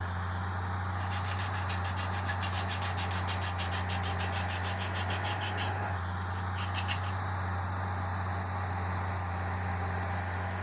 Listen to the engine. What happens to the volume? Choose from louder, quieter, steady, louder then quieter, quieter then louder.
steady.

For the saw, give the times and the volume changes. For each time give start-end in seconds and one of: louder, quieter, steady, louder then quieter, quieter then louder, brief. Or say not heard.
0.9-7.2 quieter.